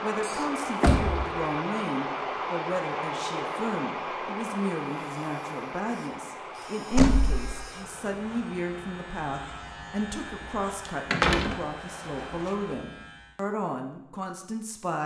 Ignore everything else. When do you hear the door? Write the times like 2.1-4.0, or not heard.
0.2-1.4, 6.9-7.5, 11.1-11.6.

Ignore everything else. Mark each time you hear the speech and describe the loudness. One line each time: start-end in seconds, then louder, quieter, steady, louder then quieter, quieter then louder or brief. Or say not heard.
0.0-15.0 steady.